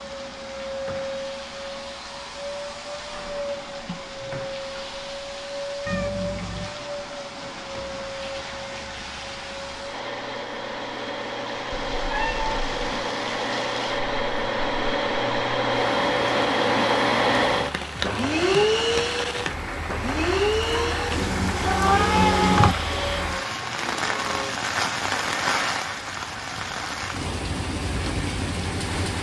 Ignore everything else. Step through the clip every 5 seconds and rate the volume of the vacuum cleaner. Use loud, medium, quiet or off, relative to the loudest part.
medium, medium, medium, loud, medium, off.